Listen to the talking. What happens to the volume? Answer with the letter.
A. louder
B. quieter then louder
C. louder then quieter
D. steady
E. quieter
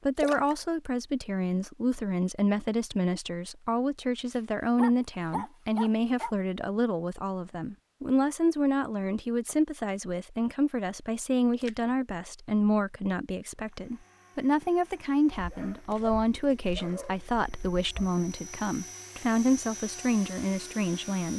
D.